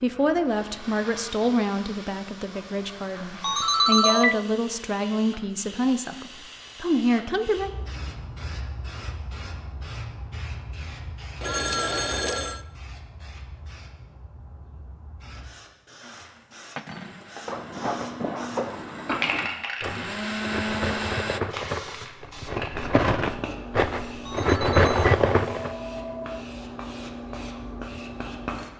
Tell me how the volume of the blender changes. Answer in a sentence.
The loudness of the blender goes up.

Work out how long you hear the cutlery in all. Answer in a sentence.
The cutlery can be heard for 9 seconds in total.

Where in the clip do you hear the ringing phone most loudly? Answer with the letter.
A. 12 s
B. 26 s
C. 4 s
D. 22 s
C.